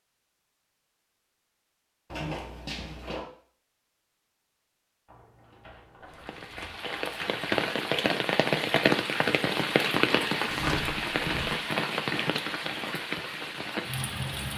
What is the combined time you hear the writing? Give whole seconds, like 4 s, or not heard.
not heard.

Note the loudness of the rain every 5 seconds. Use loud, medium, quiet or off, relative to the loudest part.
off, loud, loud.